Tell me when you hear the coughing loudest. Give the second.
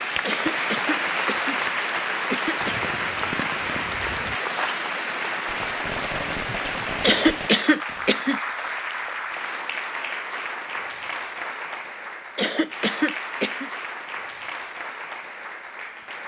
7 s.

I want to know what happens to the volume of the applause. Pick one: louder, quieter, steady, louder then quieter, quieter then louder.
quieter.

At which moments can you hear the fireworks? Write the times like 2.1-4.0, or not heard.
2.6-8.1.